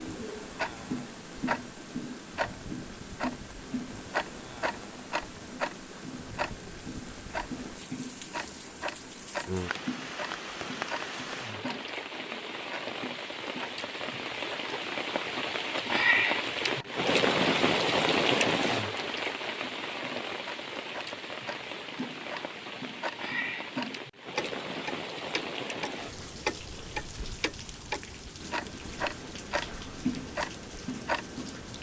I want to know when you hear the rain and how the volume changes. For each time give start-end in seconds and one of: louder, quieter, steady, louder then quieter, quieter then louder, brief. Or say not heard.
0.0-31.7 louder then quieter.